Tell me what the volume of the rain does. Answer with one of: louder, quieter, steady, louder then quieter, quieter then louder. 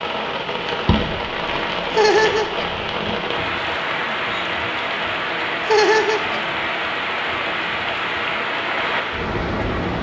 steady.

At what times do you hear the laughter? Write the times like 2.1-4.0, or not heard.
1.9-2.6, 5.7-6.4.